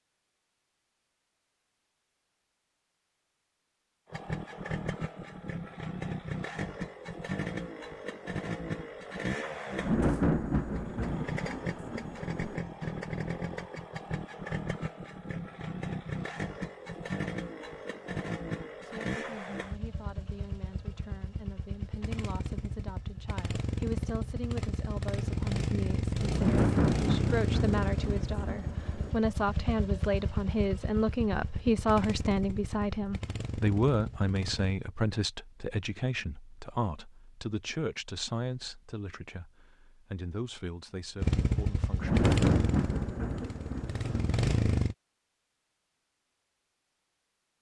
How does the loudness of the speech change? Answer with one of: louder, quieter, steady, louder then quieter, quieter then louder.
louder then quieter.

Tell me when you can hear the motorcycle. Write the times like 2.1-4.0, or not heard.
4.1-34.8, 41.2-45.0.